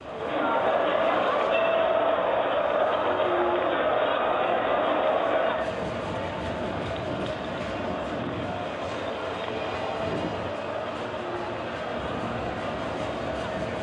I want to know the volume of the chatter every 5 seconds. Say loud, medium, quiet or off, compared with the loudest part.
loud, medium, medium.